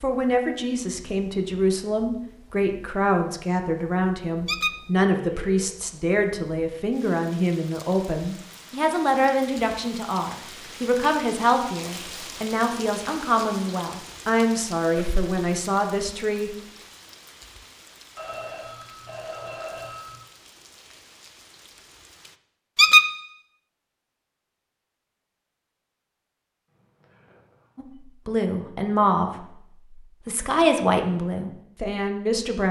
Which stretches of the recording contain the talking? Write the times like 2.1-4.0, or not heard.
0.0-16.6, 27.8-32.6.